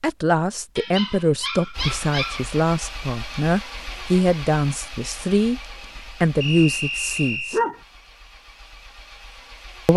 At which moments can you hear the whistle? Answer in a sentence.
You can hear the whistle from 6.4 to 7.7 s.